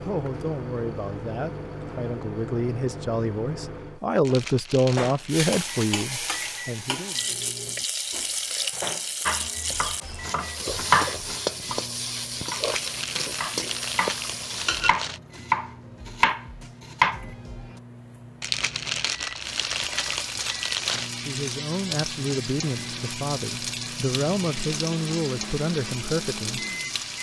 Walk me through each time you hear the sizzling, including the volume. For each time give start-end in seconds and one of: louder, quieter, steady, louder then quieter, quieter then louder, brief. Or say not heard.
5.2-14.8 steady
19.4-27.1 steady.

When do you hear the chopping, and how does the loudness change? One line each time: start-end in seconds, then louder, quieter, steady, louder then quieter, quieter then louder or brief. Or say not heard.
9.2-17.6 quieter then louder.